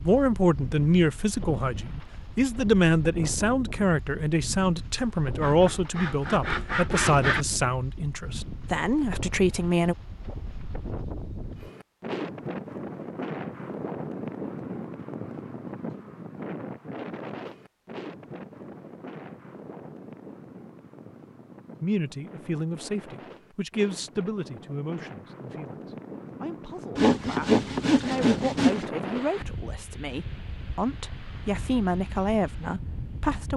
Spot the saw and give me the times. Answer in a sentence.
You can hear the saw from 5.4 to 7.5 s and from 26.9 to 28.9 s.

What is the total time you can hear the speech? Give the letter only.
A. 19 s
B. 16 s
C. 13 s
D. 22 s
D.